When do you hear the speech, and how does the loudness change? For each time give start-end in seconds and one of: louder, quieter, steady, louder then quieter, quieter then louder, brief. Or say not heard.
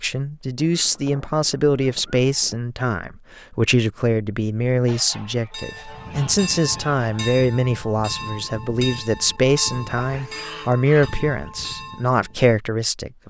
0.0-13.2 steady.